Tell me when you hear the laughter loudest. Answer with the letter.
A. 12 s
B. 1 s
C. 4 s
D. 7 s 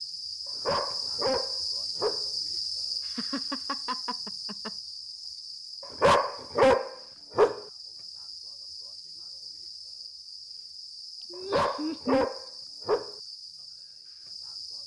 A.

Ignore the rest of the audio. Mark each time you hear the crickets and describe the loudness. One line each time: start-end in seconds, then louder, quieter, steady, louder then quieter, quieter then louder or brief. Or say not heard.
0.0-14.8 quieter.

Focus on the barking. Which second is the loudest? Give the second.
7 s.